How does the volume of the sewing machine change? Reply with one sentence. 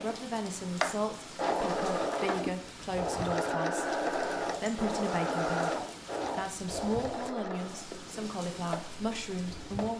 The loudness of the sewing machine goes down.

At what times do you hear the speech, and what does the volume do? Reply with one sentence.
You can hear the speech from 0.0 to 9.9 s, at a steady volume.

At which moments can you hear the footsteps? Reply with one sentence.
The footsteps can't be heard in this clip.